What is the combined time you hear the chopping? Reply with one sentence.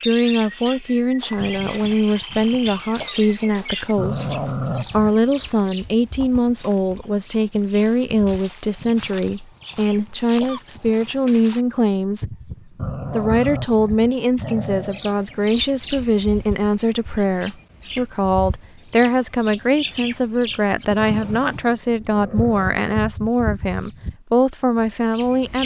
You can't hear the chopping here.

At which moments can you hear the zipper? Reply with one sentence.
The zipper can't be heard in this clip.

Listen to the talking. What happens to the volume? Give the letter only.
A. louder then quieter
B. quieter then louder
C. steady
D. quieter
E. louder
C.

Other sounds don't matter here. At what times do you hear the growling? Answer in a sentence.
You can hear the growling from 4.0 to 5.2 s, from 12.8 to 15.1 s and from 20.9 to 22.8 s.